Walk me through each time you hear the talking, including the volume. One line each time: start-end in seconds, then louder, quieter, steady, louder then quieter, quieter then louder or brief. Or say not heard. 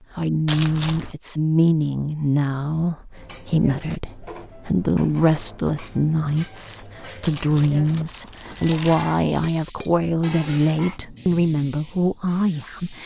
0.1-13.0 steady.